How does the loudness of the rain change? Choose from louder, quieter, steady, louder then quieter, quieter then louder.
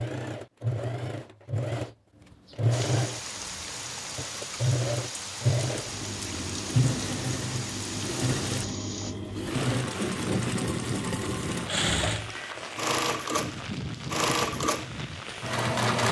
steady.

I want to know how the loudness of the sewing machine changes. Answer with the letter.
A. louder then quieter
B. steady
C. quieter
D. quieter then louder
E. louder
B.